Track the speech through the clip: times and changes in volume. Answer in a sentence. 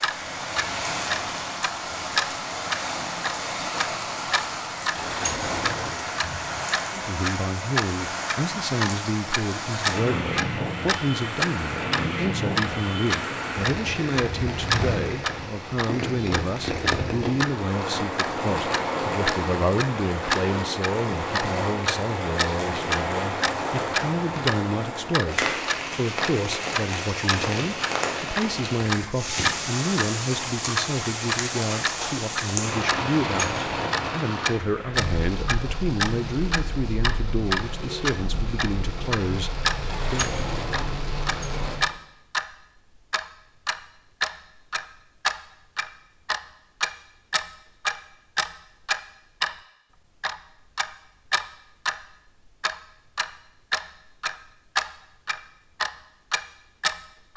You can hear the speech from 6.9 to 40.4 s, at a steady volume.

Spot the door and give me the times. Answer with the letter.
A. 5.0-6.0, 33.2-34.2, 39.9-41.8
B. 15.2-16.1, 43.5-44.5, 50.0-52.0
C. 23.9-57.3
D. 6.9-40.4
A.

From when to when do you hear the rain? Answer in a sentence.
You can hear the rain from 0.0 to 41.9 s.